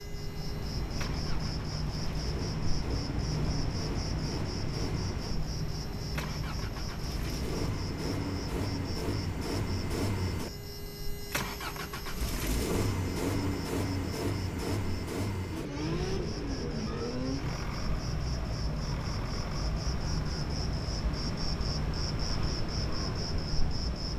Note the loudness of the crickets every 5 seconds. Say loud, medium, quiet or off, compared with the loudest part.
loud, loud, medium, loud, loud.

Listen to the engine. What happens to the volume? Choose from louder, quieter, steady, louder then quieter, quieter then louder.
louder then quieter.